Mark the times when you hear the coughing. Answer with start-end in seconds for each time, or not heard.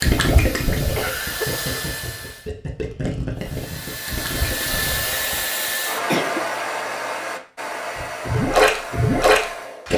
0.9-2.3, 5.7-6.5.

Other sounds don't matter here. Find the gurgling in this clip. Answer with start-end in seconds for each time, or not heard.
0.0-5.5, 8.0-9.9.